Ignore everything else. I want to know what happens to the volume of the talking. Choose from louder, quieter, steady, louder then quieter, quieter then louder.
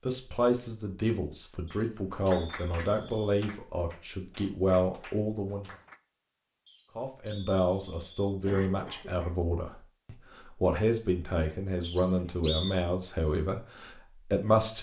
steady.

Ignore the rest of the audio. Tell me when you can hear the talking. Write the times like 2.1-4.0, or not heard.
0.1-5.7, 7.0-14.7.